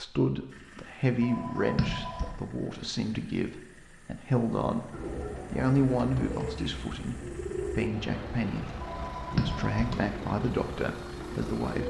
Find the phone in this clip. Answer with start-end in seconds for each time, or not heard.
1.2-2.3, 8.8-9.9.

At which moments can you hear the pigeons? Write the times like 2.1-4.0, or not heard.
4.9-11.8.